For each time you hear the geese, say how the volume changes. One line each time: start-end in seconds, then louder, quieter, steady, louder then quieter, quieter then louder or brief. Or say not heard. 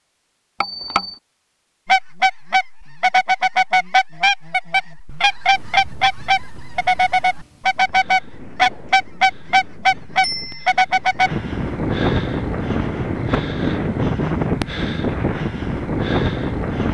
1.9-11.3 steady.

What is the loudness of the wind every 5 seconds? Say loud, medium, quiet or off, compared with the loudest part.
off, quiet, loud, loud.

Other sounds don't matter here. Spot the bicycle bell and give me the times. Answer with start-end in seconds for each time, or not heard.
0.6-1.2, 10.2-10.7.